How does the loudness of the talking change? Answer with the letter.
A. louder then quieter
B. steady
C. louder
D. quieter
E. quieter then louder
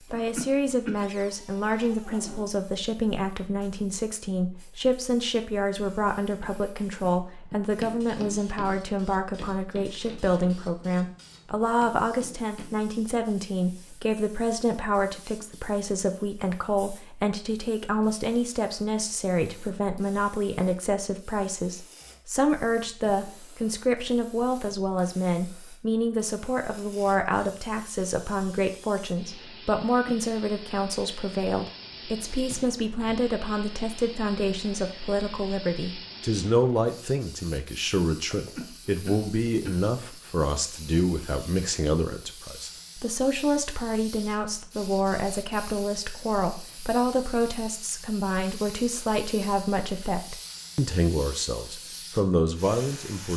B.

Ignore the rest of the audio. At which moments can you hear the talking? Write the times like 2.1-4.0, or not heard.
0.1-53.3.